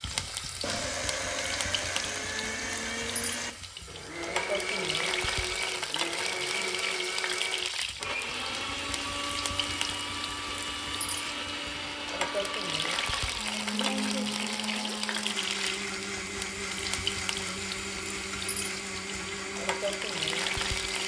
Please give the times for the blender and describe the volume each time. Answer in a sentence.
You can hear the blender from 0.0 to 21.0 s, at a steady volume.